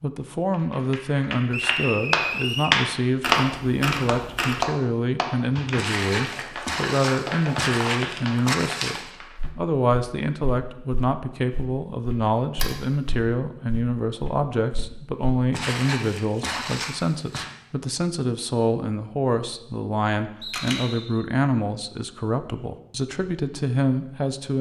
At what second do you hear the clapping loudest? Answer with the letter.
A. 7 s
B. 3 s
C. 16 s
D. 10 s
B.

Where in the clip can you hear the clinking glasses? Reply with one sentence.
You can't hear the clinking glasses here.